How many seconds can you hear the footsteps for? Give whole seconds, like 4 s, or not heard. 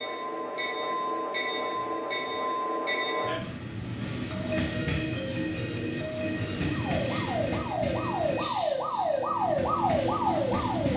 not heard.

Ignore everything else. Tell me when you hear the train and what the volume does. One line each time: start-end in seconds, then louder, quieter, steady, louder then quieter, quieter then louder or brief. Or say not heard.
0.0-10.9 steady.